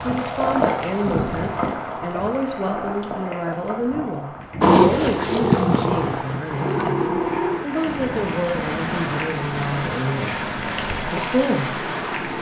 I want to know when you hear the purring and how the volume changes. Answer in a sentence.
You can hear the purring from 4.6 to 12.3 s, getting quieter.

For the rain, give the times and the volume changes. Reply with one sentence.
You can hear the rain from 0.0 to 12.3 s, getting quieter then louder.